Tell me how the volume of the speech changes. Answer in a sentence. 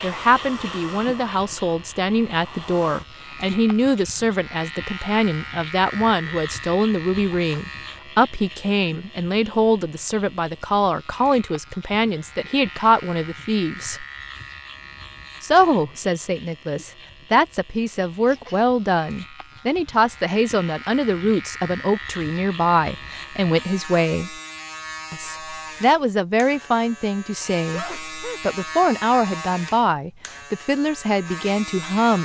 The volume of the speech stays about the same.